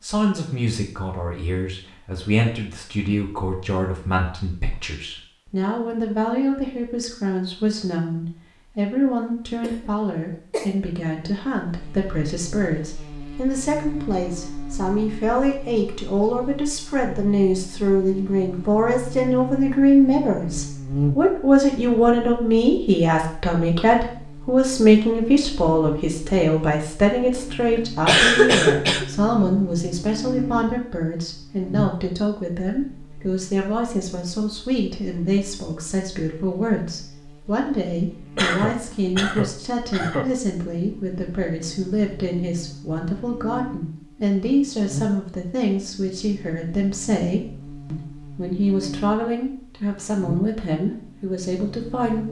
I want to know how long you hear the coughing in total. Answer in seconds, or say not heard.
4 s.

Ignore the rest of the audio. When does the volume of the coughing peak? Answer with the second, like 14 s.
28 s.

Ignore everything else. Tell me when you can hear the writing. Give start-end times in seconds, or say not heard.
not heard.